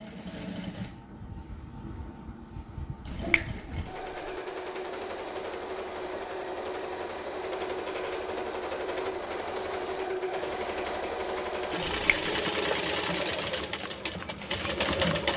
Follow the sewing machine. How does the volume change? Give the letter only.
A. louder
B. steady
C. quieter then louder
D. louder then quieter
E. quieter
A.